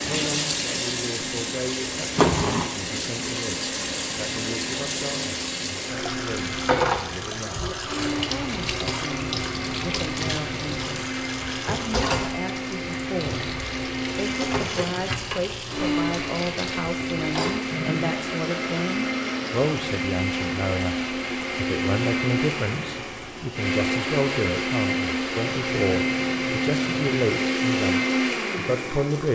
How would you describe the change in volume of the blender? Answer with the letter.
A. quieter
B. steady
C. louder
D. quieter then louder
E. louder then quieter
C.